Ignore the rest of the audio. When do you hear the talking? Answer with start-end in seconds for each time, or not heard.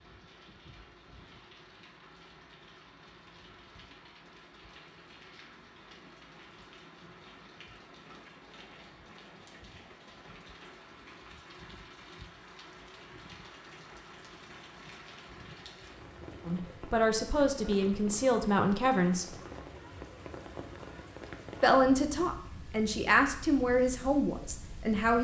16.4-19.4, 21.6-25.2.